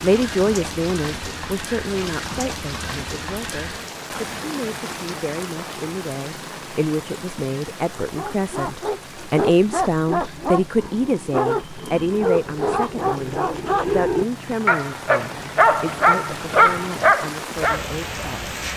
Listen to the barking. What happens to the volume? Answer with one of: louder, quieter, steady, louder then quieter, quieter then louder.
louder.